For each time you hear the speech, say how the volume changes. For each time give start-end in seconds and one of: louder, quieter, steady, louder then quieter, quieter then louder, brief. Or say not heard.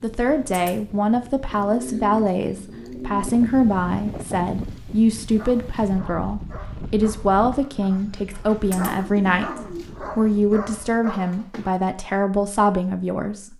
0.0-13.5 steady.